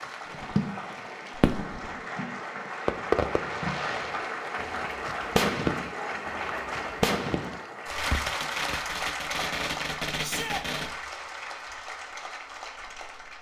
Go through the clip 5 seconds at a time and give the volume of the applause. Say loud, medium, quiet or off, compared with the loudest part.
loud, loud, medium.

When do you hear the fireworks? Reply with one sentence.
The fireworks can be heard from 0.3 to 10.9 s.